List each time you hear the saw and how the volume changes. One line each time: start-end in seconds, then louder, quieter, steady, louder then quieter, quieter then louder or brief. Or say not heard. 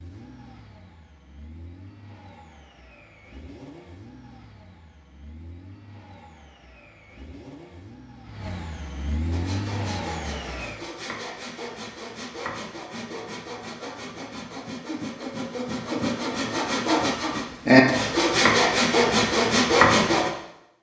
9.3-20.3 louder.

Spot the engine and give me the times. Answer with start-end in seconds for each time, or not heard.
0.0-10.9.